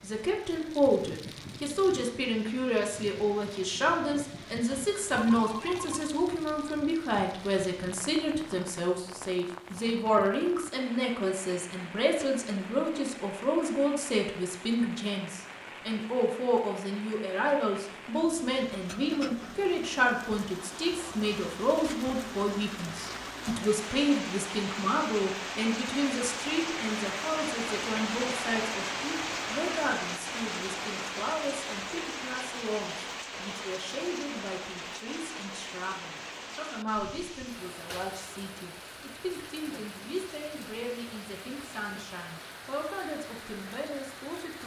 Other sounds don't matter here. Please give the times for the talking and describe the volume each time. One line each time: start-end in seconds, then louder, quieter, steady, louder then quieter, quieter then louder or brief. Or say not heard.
0.0-44.6 quieter.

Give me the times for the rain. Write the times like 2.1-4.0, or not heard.
0.0-44.6.